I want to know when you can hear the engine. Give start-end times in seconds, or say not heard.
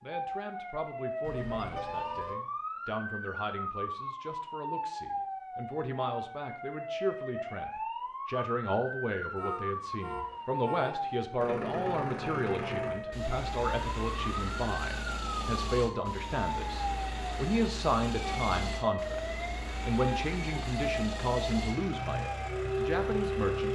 11.3-23.7.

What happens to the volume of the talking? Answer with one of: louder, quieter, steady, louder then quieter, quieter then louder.
louder.